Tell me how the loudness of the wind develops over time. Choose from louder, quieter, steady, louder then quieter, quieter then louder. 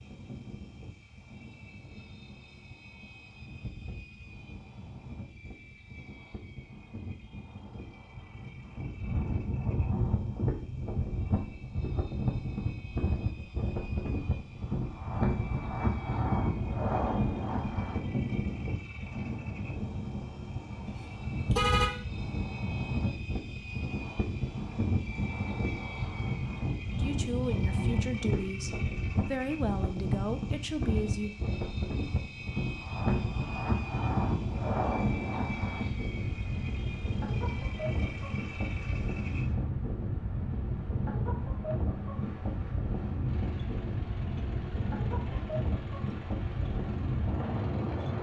louder.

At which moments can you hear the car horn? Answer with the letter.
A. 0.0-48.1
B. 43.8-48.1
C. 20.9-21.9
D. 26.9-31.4
C.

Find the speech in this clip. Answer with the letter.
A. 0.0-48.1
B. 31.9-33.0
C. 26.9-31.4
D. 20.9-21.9
C.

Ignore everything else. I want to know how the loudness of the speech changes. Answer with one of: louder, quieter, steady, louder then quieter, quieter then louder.
steady.